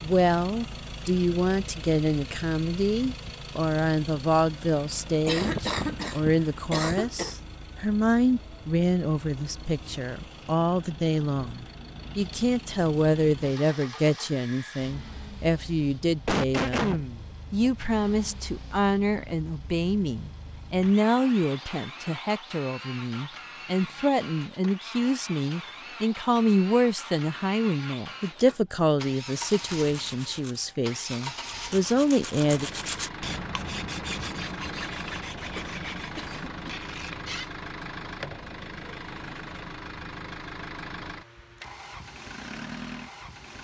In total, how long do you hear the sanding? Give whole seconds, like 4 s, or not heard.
10 s.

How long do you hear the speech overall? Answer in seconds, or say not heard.
33 s.